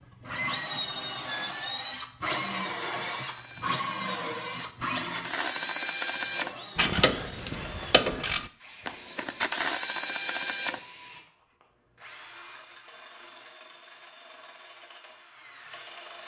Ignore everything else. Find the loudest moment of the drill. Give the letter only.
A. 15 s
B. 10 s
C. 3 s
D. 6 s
C.